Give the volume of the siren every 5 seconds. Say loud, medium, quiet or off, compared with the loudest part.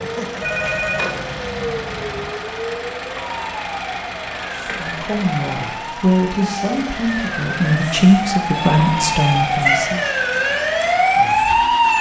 quiet, medium, loud.